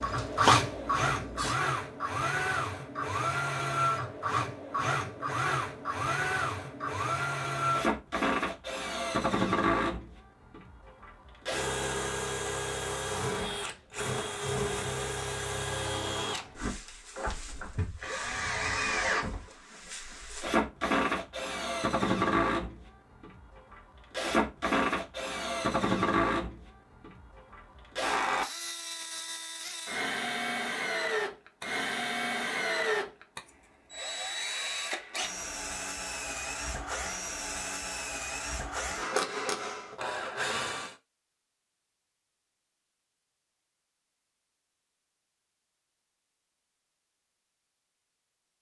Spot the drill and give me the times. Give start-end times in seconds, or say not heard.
0.0-41.0.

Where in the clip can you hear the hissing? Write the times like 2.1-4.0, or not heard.
0.0-1.6.